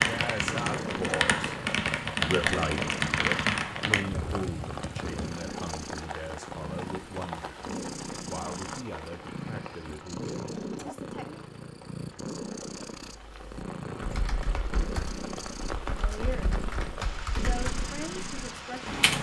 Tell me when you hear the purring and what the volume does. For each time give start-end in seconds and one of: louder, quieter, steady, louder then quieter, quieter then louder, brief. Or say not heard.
0.0-19.1 steady.